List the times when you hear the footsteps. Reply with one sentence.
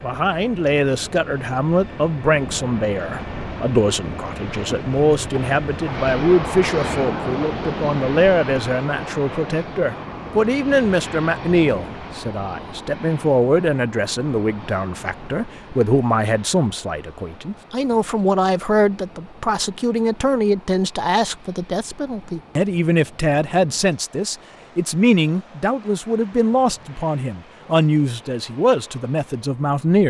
The footsteps can't be heard in this clip.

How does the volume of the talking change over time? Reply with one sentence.
The loudness of the talking stays about the same.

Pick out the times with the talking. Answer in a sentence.
You can hear the talking from 0.0 to 30.0 s.